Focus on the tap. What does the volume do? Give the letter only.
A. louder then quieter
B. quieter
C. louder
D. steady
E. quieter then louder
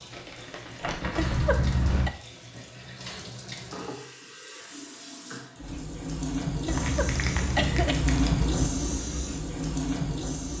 C.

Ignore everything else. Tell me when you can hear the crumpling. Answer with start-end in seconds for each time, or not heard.
0.1-2.0, 6.7-8.4.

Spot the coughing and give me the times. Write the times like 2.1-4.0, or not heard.
1.1-2.1, 6.7-8.7.